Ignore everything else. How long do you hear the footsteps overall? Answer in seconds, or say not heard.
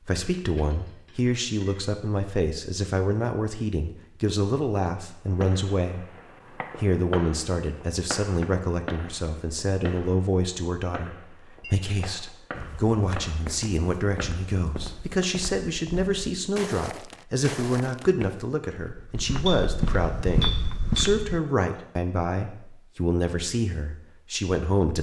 9 s.